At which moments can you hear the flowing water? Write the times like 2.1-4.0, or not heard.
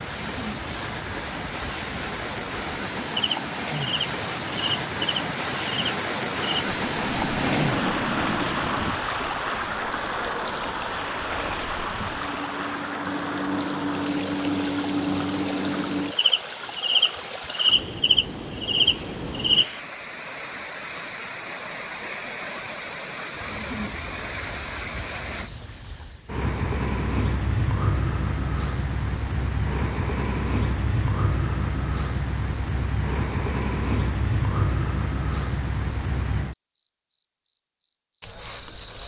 0.0-25.5.